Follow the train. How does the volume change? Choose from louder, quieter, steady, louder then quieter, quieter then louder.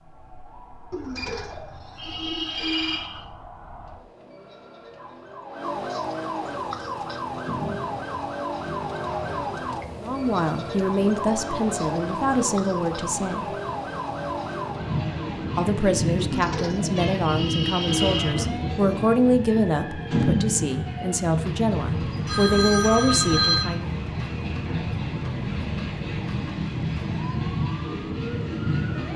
louder.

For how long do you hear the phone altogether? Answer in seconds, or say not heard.
3 s.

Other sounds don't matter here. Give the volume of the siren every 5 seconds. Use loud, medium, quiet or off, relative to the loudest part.
quiet, loud, loud, medium, medium, medium.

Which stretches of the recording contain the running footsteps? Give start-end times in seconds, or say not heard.
not heard.